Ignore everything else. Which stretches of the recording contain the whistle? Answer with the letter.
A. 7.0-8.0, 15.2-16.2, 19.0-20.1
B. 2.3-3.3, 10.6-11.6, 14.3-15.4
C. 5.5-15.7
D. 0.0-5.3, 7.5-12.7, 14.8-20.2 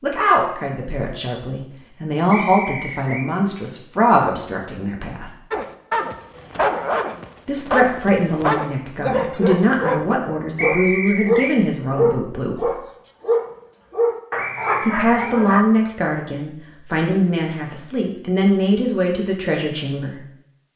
B.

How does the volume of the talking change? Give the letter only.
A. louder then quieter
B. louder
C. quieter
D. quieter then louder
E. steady
E.